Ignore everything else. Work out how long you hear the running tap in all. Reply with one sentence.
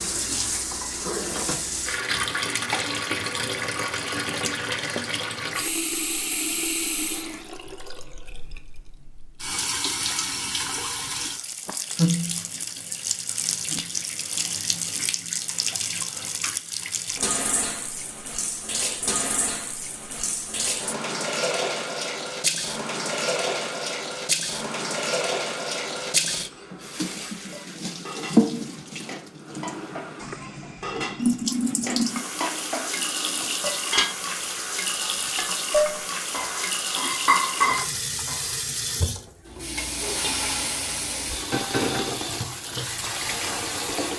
You can hear the running tap for 44 seconds altogether.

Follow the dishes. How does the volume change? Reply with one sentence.
The loudness of the dishes goes up.